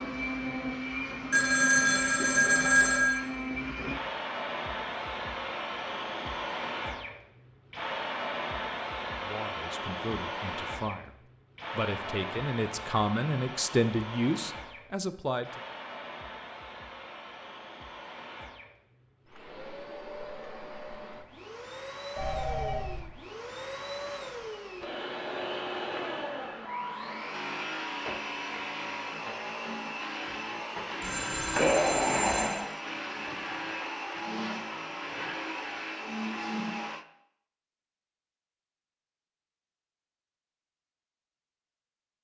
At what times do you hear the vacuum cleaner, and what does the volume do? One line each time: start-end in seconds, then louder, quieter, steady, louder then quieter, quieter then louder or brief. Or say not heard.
0.0-37.0 quieter then louder.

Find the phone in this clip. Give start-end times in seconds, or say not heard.
1.3-3.2, 22.1-23.1, 31.0-32.6.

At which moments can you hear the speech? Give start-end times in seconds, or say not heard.
9.2-15.6.